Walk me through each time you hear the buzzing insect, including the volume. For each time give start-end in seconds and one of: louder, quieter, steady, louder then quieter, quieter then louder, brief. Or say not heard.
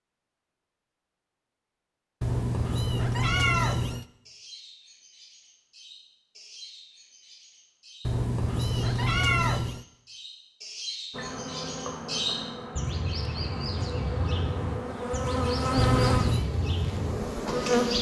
11.1-17.9 louder then quieter.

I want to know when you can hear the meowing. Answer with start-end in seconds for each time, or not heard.
2.2-4.0, 8.1-9.8, 15.8-16.5.